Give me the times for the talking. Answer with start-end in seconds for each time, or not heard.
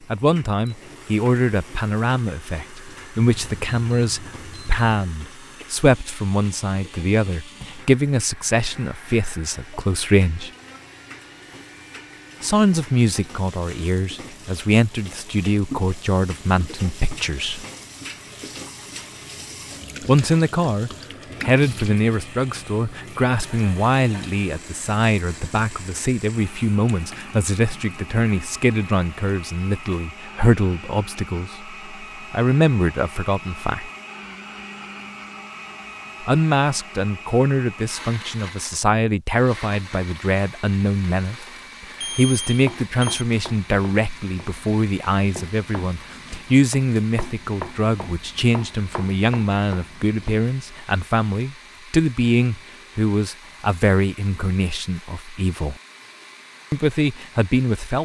0.1-10.5, 12.4-17.6, 20.1-33.9, 36.2-41.5, 42.0-55.8, 56.7-58.0.